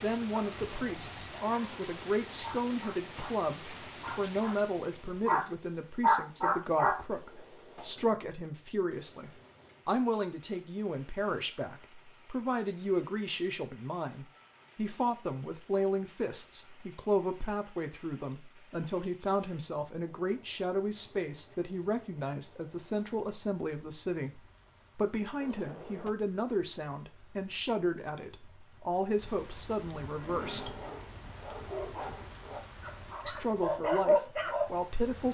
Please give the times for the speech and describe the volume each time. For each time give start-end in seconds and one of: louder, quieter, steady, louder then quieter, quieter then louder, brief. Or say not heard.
0.0-30.8 steady
33.2-35.2 brief.